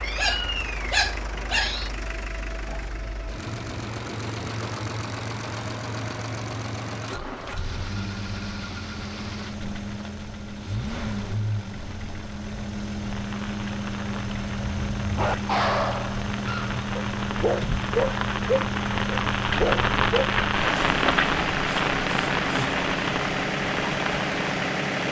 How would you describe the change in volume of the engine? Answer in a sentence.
The loudness of the engine goes up.